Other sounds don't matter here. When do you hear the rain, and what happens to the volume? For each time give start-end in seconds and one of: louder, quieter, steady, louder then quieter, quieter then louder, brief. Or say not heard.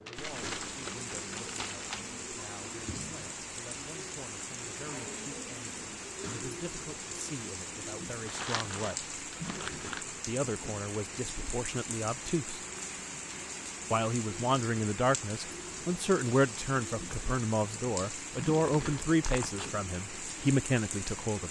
0.0-21.4 steady.